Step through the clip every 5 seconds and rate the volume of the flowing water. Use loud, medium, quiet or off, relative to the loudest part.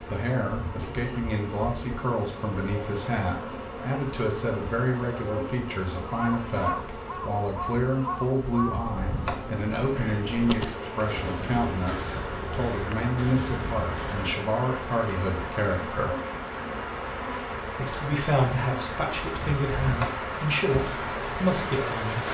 off, off, medium, loud, loud.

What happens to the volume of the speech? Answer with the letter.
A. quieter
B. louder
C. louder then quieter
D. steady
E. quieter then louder
D.